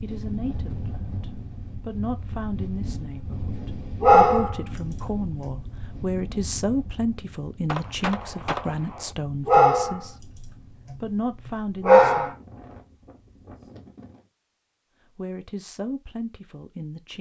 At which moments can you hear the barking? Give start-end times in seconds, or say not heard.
4.0-6.0, 9.4-12.3.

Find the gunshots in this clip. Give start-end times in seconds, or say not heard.
7.7-9.2.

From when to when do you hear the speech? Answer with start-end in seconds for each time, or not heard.
0.0-10.2, 11.0-12.3, 15.2-17.1.